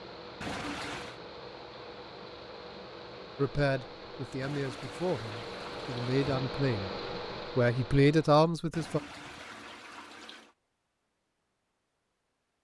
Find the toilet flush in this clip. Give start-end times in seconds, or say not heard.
0.4-1.2, 4.4-6.2, 8.7-10.6.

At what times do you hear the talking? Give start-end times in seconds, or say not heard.
3.4-6.9, 7.5-9.0.